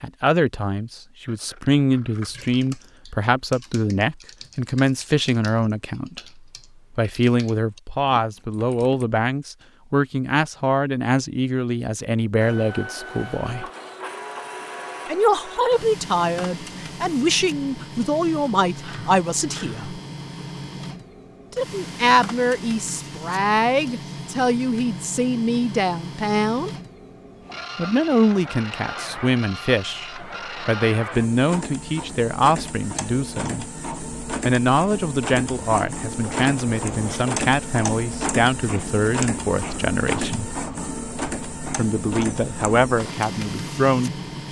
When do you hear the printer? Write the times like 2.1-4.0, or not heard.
12.3-44.4.